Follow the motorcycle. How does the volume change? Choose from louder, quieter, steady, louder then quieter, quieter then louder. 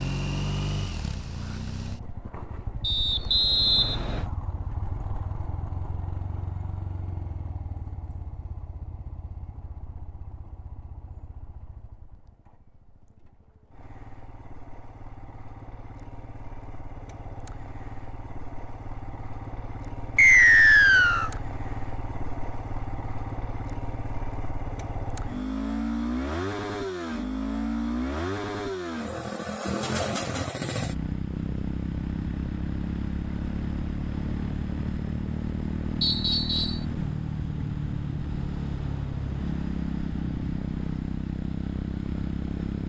quieter then louder.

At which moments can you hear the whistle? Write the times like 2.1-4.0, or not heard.
2.8-4.2, 20.1-21.3, 36.0-36.9.